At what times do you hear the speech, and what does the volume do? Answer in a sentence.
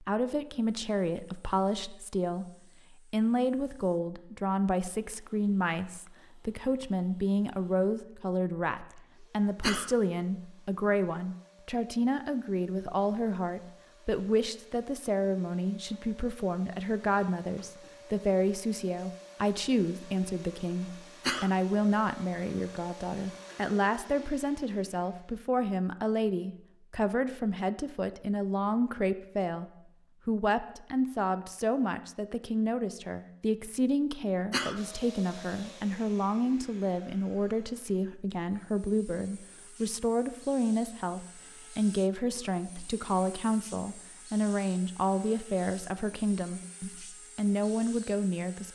The speech can be heard from 0.0 to 48.6 s, at a steady volume.